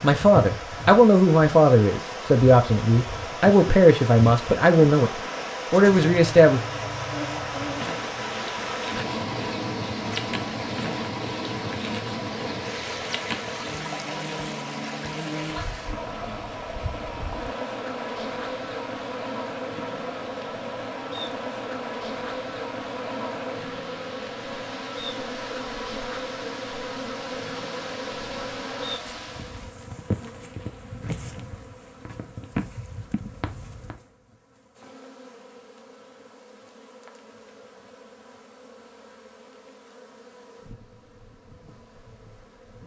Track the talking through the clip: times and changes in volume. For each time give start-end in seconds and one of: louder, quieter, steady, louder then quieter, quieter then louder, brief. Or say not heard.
0.0-5.1 steady
5.7-6.6 brief.